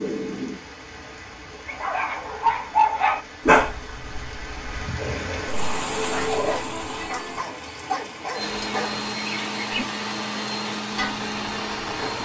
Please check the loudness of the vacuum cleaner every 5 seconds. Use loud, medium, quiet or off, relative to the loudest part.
off, loud, loud.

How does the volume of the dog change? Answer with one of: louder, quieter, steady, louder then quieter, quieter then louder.
quieter.